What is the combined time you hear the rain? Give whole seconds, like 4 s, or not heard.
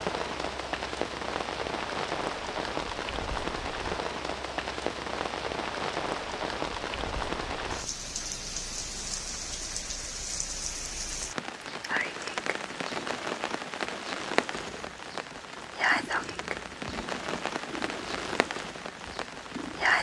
20 s.